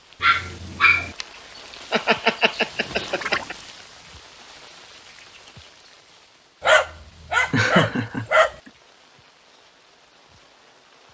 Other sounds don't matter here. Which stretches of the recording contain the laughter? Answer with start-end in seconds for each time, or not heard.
1.2-3.5, 7.5-8.7.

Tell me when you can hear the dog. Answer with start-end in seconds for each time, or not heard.
0.2-1.1, 6.6-8.6.